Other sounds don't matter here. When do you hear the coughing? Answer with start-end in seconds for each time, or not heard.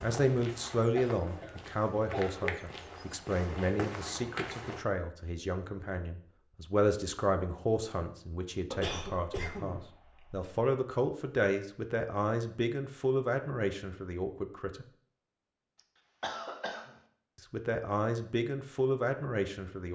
0.9-2.6, 8.7-10.5, 15.8-16.9.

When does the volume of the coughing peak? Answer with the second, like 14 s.
9 s.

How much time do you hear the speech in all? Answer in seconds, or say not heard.
17 s.